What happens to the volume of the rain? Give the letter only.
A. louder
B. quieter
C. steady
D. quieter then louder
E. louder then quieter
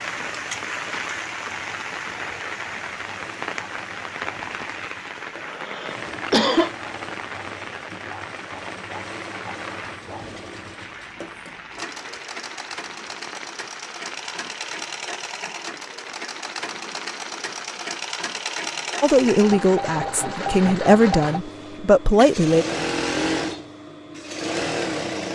B.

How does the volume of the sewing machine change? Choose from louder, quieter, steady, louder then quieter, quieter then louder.
louder.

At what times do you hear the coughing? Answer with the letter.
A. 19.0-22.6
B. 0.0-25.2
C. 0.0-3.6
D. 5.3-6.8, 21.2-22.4
D.